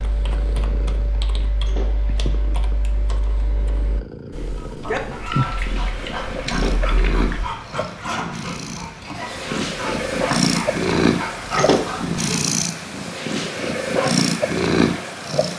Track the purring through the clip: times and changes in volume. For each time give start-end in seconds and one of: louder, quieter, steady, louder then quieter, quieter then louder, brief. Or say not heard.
0.0-15.5 louder.